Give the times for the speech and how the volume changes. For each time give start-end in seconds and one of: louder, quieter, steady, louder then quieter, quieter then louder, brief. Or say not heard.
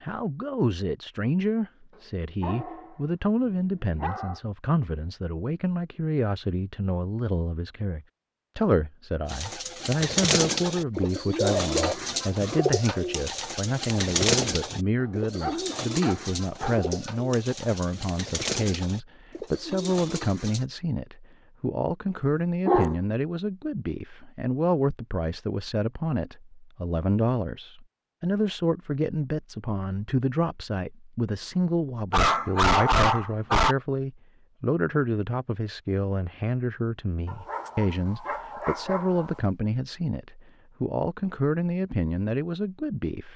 0.0-43.3 steady.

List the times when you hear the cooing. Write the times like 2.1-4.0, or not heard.
9.2-20.6.